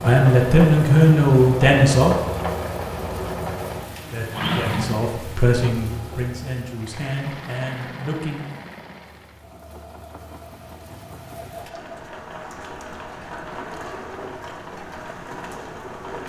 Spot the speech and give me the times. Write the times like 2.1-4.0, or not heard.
0.0-2.1, 4.1-8.5.